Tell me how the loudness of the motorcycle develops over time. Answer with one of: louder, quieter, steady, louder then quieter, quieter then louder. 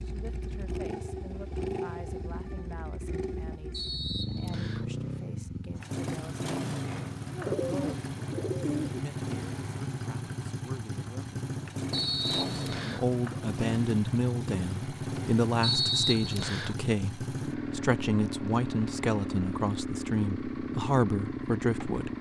steady.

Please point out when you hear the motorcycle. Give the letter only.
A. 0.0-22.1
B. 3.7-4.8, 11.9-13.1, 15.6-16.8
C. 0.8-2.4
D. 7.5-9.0
A.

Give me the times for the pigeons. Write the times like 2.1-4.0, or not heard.
7.5-9.0.